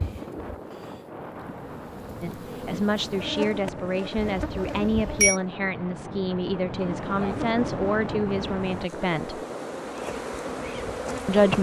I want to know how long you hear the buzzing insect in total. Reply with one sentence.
The buzzing insect can be heard for 10 seconds in total.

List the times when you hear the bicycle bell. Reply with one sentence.
You can hear the bicycle bell from 4.2 to 5.4 s.